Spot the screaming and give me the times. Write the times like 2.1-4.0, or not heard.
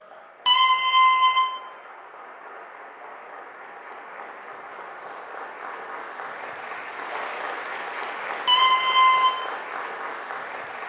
0.5-1.4, 8.4-9.3.